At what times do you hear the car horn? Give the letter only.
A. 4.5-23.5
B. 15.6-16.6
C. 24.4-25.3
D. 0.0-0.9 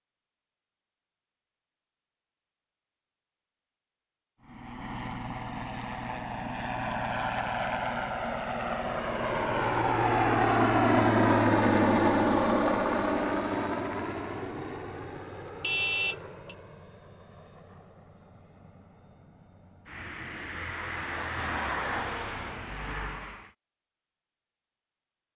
B.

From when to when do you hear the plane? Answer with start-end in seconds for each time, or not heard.
4.5-23.5.